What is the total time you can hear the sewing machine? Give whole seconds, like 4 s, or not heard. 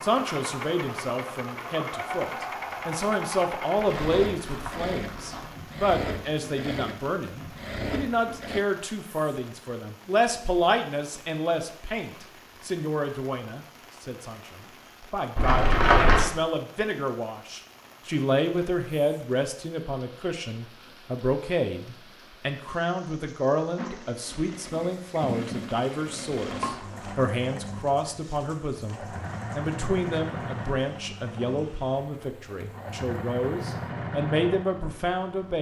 20 s.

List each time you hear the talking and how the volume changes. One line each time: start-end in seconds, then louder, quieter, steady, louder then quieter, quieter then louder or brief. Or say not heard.
0.0-35.5 steady.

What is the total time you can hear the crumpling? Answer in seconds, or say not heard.
4 s.